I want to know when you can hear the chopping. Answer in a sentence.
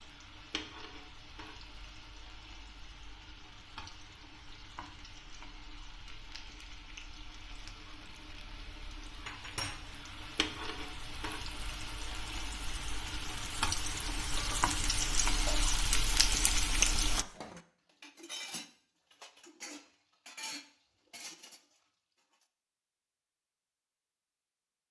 The chopping can't be heard in this clip.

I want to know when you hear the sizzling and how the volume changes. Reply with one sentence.
The sizzling can be heard from 0.0 to 17.2 s, getting louder.